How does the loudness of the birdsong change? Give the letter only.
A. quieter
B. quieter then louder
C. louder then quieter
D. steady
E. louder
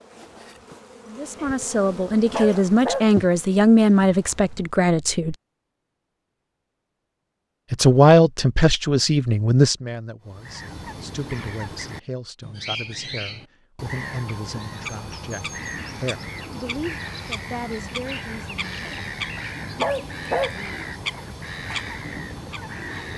D.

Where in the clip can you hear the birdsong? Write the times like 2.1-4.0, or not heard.
10.2-23.1.